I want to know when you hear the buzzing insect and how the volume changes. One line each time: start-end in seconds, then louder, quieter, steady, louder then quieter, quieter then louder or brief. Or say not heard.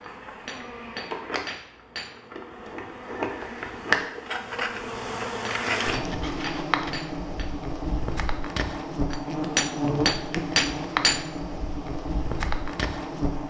0.0-13.4 louder.